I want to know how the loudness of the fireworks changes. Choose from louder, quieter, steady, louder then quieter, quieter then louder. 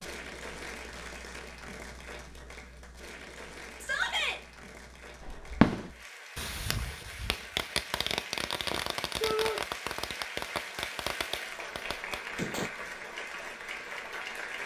quieter.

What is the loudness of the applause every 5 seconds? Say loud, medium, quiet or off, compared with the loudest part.
medium, medium, loud.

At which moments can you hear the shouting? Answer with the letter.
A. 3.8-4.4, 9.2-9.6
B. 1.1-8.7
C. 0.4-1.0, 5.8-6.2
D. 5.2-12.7
A.